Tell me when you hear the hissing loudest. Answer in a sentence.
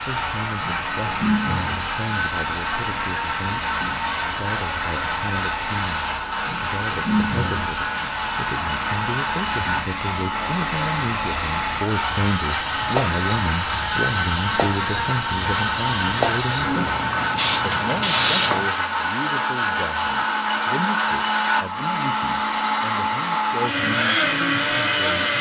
The volume of the hissing peaks at 18 seconds.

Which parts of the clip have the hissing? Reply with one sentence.
The hissing can be heard from 0.0 to 18.6 s.